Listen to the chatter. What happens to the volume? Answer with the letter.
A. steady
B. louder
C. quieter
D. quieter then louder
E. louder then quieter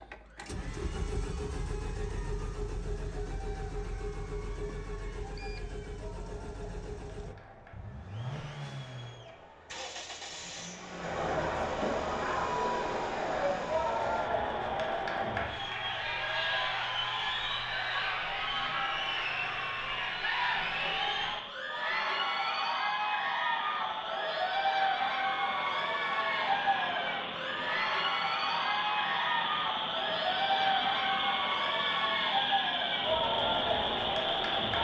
B.